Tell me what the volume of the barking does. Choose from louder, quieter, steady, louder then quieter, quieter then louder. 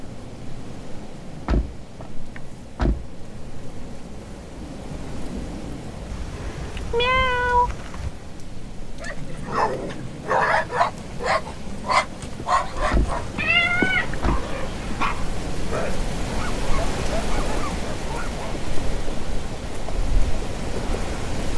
quieter.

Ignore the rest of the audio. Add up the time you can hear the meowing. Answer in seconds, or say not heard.
4 s.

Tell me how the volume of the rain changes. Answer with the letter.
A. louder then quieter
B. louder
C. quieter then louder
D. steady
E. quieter
B.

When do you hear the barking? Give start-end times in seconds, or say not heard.
9.0-18.4.